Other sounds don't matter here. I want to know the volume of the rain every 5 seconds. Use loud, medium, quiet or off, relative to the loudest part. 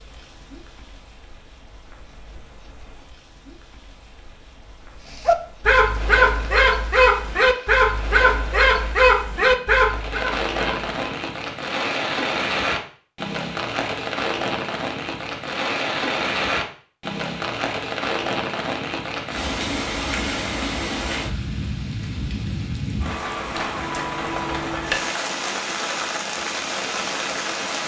quiet, quiet, loud, loud, loud, loud.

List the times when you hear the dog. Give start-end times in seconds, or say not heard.
5.2-10.9.